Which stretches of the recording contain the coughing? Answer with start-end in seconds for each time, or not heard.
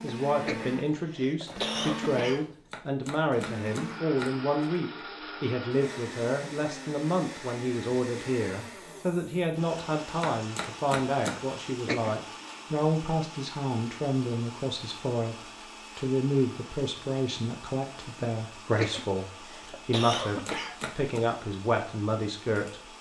0.5-2.5, 11.8-12.6, 18.8-20.8.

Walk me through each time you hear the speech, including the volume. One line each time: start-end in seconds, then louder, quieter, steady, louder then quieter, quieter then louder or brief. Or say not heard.
0.0-15.3 steady
15.9-22.9 steady.